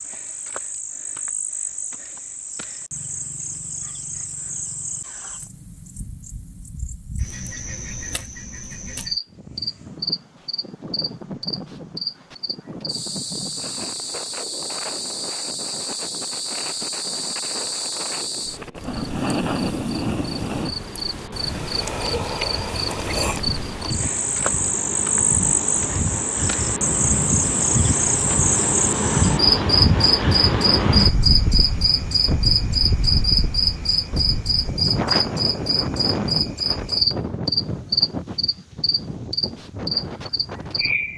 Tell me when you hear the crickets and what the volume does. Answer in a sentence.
You can hear the crickets from 0.0 to 41.1 s, getting louder.